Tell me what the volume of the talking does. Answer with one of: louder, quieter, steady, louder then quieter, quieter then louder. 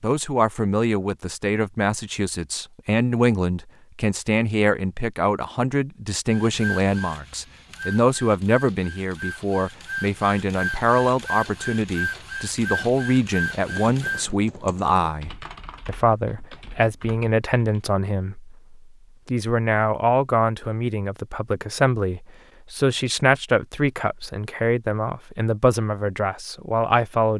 steady.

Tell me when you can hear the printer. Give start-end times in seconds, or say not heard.
6.3-14.2.